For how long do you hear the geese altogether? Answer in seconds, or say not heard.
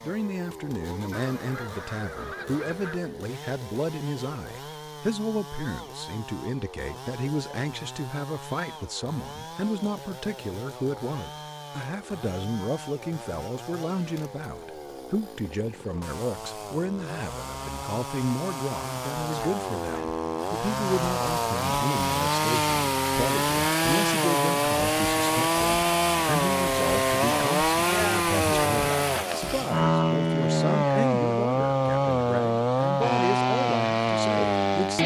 2 s.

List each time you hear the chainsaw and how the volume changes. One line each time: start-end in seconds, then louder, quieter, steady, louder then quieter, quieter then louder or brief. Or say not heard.
0.0-35.0 louder.